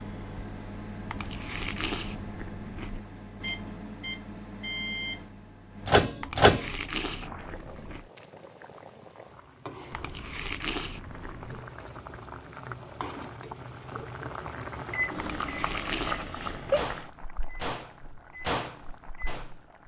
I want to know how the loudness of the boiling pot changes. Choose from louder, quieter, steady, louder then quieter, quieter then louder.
louder then quieter.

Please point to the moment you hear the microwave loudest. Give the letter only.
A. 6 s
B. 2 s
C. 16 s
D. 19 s
A.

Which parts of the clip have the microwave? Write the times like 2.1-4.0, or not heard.
0.0-6.7, 14.8-19.8.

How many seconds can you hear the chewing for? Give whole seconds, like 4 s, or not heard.
7 s.